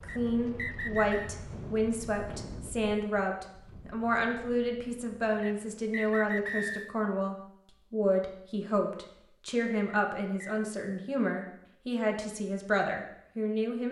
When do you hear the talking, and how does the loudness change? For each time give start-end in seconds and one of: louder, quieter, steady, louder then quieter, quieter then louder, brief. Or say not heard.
0.0-13.8 steady.